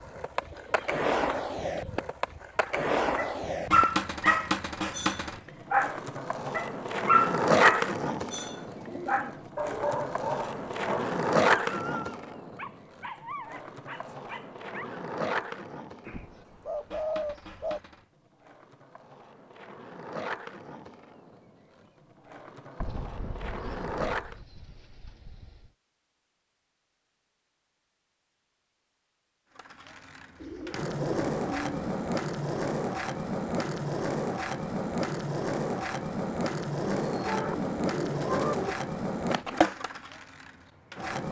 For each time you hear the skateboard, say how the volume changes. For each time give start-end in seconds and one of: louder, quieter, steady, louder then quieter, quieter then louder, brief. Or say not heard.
0.0-24.4 quieter
29.6-41.2 steady.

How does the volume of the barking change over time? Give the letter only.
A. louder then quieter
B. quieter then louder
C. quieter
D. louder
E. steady
C.